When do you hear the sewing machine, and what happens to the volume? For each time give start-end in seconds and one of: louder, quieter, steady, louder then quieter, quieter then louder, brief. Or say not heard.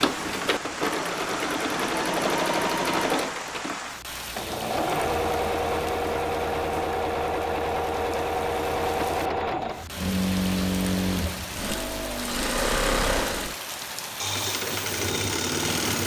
0.0-16.0 steady.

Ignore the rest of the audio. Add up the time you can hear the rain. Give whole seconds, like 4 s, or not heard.
16 s.